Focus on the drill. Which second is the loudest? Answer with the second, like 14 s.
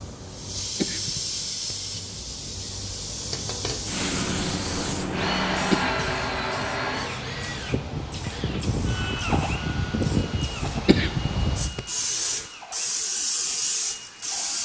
6 s.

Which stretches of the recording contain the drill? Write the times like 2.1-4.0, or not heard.
5.1-14.5.